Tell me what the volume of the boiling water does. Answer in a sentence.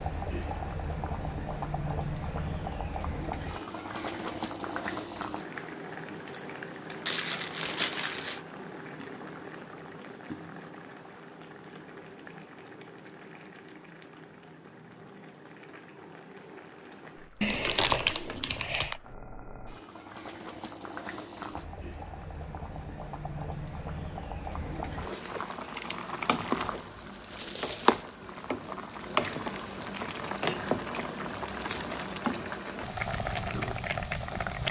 The loudness of the boiling water goes down, then up.